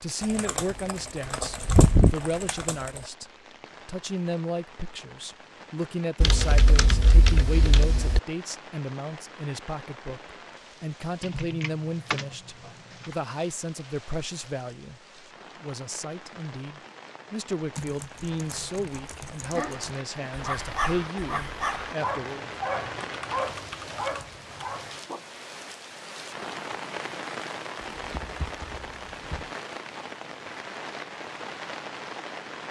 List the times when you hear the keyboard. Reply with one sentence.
You can hear the keyboard from 0.2 to 3.0 s, from 6.2 to 8.2 s, from 11.2 to 13.2 s, from 17.8 to 19.9 s, from 23.0 to 24.4 s and from 28.0 to 29.6 s.